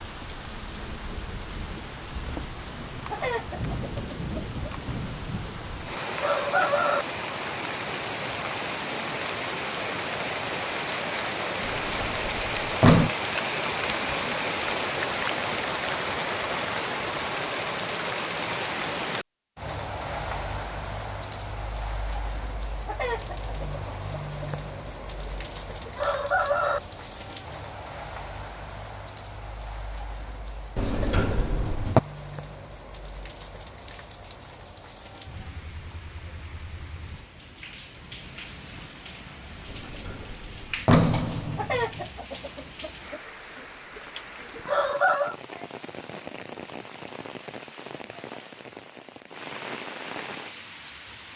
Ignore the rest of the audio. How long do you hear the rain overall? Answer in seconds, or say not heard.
51 s.